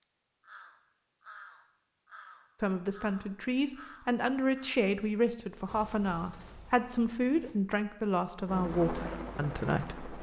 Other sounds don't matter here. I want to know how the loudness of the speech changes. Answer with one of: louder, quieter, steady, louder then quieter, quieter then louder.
steady.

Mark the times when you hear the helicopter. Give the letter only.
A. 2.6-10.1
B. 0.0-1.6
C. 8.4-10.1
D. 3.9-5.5
C.